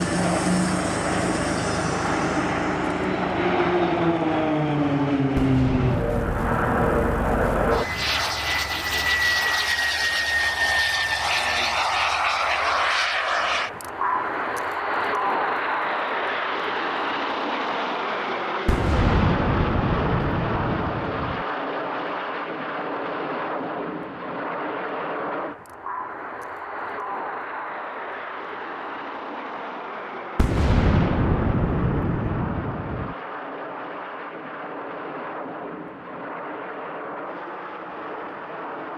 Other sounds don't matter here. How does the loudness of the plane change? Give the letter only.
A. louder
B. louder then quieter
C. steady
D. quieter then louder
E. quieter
E.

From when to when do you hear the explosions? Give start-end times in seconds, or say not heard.
5.3-8.1, 18.6-21.4, 30.4-33.1.